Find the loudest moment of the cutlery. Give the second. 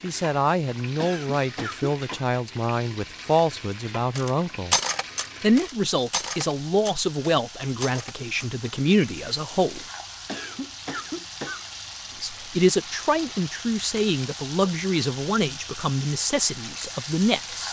5 s.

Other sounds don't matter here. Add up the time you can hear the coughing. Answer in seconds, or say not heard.
3 s.